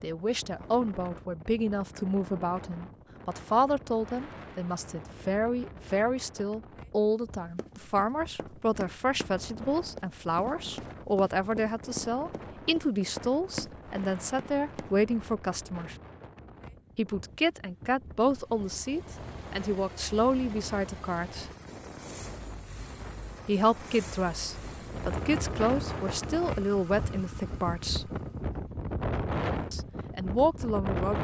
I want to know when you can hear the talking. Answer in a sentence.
You can hear the talking from 0.0 to 15.9 s, from 16.9 to 21.5 s, from 23.4 to 28.1 s and from 29.7 to 31.1 s.